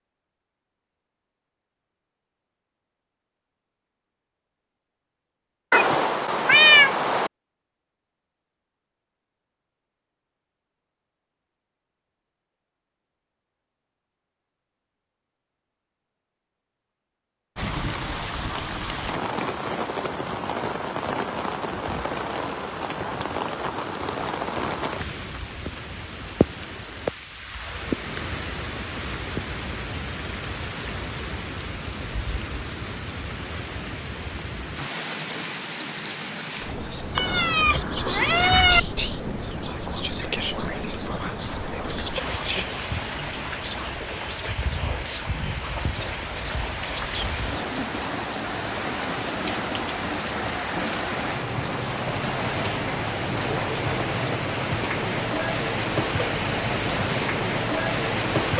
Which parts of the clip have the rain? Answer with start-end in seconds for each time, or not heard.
17.6-58.5.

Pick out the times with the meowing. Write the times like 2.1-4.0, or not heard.
5.7-7.3, 37.1-38.8.